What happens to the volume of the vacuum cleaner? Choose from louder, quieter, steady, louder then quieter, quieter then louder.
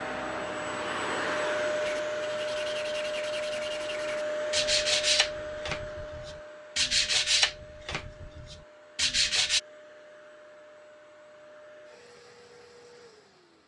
quieter.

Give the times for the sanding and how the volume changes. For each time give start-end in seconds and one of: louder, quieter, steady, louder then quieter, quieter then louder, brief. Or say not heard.
1.8-9.6 louder then quieter.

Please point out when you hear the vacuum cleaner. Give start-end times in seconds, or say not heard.
0.0-13.6.